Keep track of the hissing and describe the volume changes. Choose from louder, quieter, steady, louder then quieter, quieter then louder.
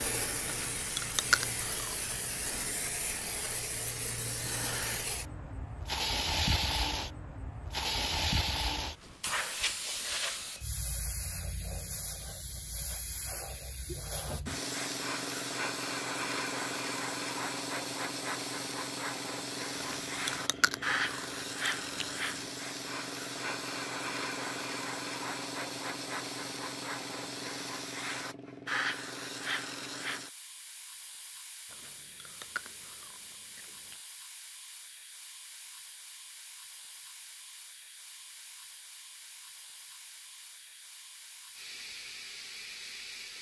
quieter.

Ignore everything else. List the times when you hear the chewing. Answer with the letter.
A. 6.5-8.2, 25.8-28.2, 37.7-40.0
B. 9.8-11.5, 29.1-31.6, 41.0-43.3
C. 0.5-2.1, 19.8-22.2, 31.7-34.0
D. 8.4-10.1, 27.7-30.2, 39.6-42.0
C.